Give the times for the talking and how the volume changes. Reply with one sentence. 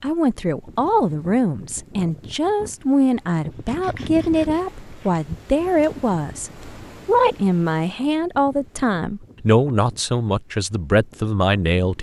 You can hear the talking from 0.0 to 11.9 s, at a steady volume.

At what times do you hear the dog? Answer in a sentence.
The dog can't be heard in this clip.